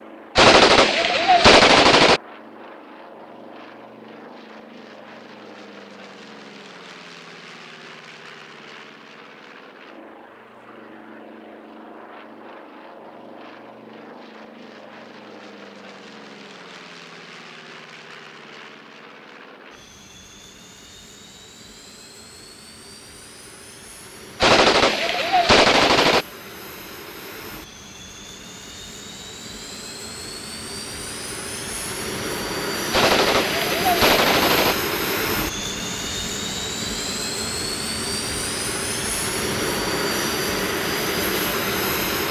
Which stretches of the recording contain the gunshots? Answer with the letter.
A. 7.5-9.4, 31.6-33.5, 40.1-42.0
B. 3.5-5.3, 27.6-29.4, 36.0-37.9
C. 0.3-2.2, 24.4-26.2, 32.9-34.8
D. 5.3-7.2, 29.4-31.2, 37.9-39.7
C.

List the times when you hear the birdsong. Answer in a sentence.
You can't hear the birdsong here.